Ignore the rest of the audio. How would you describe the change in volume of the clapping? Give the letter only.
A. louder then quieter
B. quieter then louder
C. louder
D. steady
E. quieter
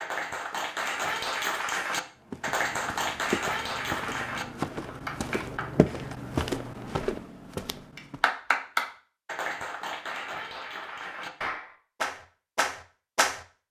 D.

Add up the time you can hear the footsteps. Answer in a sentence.
You can hear the footsteps for 6 seconds altogether.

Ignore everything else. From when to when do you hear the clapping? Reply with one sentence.
You can hear the clapping from 0.0 to 5.9 s and from 8.0 to 13.4 s.